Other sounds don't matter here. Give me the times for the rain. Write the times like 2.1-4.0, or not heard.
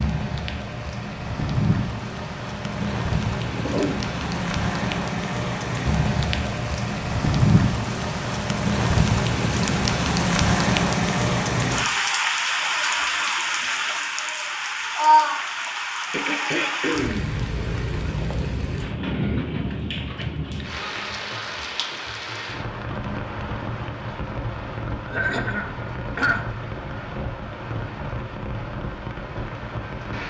0.0-30.2.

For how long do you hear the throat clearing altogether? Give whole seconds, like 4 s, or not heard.
3 s.